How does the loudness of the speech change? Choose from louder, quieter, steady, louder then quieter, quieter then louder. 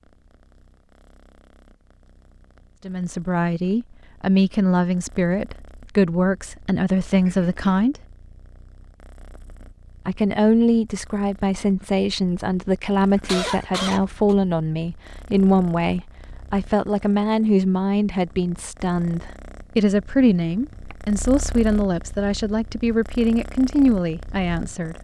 steady.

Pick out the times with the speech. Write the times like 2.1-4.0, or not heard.
2.9-8.0, 10.1-24.9.